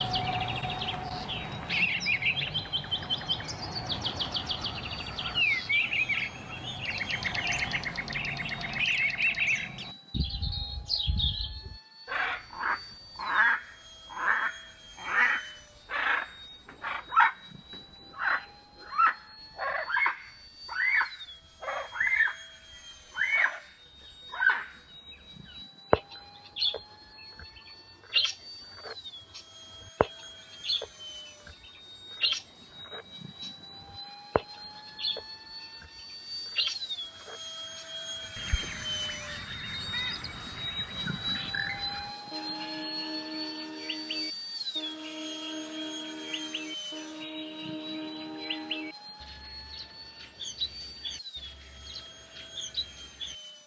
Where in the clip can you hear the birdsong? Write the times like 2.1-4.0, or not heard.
0.0-17.4, 18.1-22.4, 23.1-23.6, 24.3-53.4.